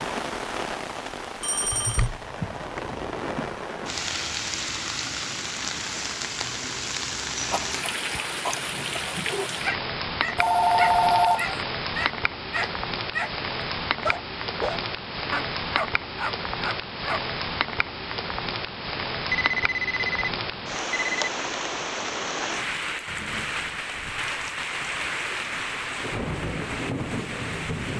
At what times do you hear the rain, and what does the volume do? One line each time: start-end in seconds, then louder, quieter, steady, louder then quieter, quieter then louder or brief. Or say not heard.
0.0-27.9 steady.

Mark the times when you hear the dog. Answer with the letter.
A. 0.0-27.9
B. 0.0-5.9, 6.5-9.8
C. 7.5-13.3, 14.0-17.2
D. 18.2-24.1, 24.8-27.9
C.